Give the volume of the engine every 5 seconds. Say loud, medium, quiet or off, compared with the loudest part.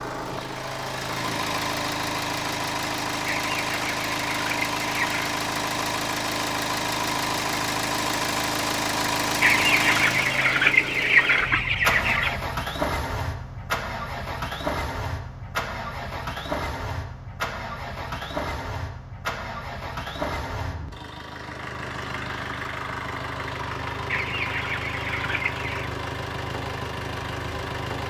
loud, loud, loud, medium, medium, medium.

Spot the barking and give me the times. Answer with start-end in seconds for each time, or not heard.
not heard.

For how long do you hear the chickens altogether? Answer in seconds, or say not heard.
7 s.